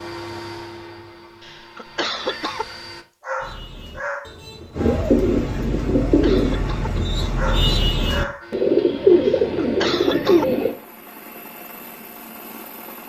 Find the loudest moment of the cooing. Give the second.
9 s.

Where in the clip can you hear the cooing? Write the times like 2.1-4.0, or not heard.
3.4-10.8.